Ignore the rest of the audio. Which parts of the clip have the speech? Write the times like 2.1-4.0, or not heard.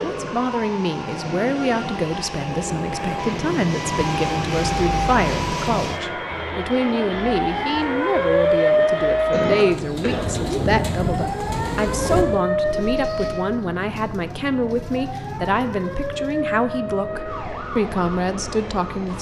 0.0-19.1.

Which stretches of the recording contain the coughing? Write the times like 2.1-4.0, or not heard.
9.3-10.3.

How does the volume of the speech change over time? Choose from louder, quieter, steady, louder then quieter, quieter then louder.
steady.